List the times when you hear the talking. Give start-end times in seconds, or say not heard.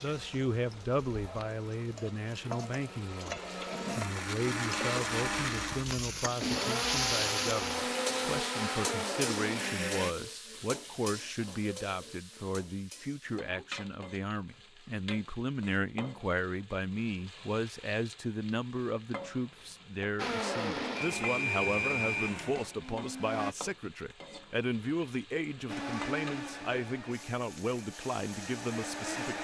0.0-29.3.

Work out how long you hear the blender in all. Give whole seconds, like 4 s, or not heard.
17 s.